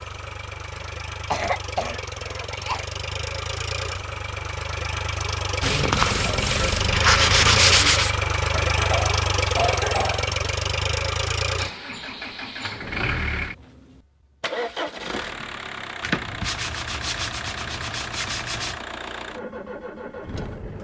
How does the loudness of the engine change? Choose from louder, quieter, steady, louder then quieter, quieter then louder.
louder then quieter.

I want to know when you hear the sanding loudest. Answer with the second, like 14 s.
8 s.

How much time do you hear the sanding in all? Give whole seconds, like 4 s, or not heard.
5 s.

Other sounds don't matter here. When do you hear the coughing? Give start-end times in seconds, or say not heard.
0.8-2.9, 8.5-10.3, 15.1-15.6.